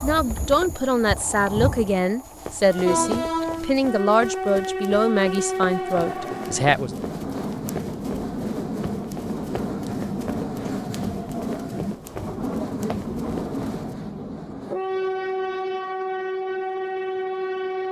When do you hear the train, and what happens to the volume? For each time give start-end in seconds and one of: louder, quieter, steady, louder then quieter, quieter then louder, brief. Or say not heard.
0.0-17.8 steady.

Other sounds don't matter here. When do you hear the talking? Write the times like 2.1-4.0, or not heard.
0.0-7.0.